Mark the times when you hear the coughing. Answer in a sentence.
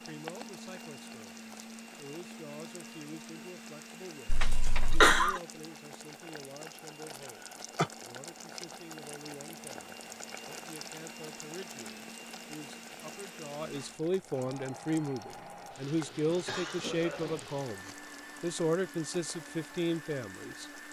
You can hear the coughing from 4.2 to 5.4 s, from 7.2 to 7.9 s and from 16.2 to 17.9 s.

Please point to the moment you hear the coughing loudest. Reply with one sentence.
The loudest moment of the coughing is at 5 seconds.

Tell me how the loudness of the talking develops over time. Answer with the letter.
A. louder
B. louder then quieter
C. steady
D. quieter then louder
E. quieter
A.